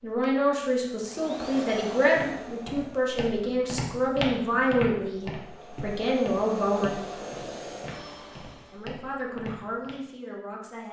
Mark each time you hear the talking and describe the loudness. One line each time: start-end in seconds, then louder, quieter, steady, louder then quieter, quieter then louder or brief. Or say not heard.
0.0-6.9 steady
8.7-10.8 brief.